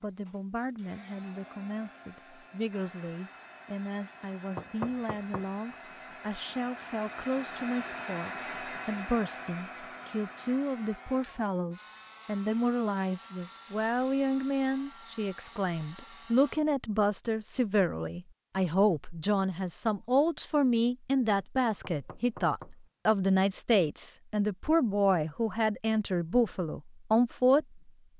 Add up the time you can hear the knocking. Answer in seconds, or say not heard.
2 s.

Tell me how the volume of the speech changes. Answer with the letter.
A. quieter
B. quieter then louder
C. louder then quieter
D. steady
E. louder
E.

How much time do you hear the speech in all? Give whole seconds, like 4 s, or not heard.
28 s.